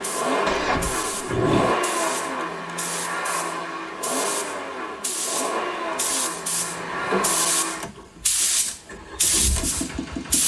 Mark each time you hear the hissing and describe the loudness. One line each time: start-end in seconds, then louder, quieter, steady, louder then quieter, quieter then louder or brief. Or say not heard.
0.0-10.4 louder.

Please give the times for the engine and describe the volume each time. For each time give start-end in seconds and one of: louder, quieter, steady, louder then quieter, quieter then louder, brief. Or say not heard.
0.0-10.4 quieter.